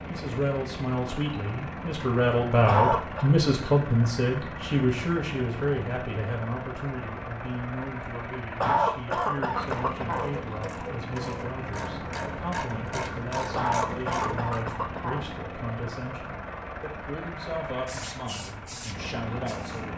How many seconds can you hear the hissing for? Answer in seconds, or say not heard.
2 s.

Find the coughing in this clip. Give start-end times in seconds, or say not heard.
2.6-3.3, 8.6-10.3, 13.6-15.2.